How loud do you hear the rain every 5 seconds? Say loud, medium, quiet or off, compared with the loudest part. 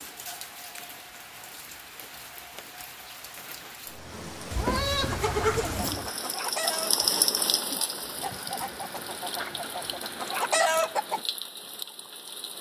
medium, loud, medium.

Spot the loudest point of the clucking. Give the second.
11 s.